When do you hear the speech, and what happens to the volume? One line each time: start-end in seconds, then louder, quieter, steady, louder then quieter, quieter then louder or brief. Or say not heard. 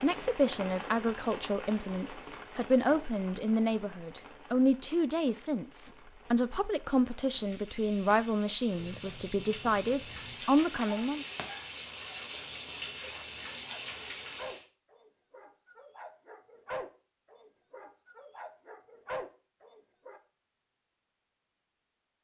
0.0-11.2 steady.